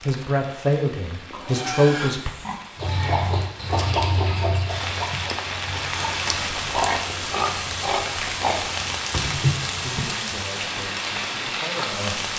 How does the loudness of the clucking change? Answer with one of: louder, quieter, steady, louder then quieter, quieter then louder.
quieter then louder.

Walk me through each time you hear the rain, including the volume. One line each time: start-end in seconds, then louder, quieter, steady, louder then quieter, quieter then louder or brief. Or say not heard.
0.0-12.3 louder.